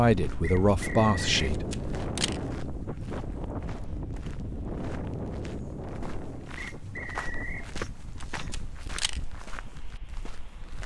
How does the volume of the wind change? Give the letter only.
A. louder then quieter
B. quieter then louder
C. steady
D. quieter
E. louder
D.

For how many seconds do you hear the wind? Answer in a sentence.
You can hear the wind for 11 seconds altogether.